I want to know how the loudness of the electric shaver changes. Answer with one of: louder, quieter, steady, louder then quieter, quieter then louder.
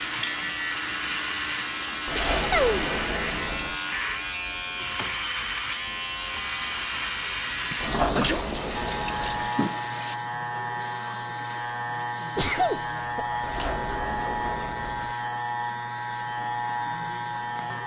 steady.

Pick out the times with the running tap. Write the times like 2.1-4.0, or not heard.
0.0-10.2.